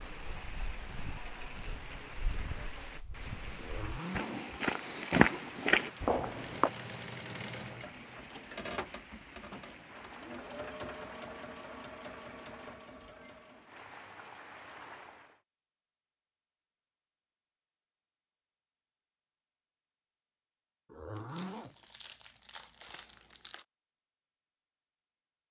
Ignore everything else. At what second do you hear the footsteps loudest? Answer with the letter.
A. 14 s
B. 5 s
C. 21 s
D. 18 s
B.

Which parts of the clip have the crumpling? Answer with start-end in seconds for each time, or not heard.
21.1-23.6.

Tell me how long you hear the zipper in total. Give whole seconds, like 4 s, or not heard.
2 s.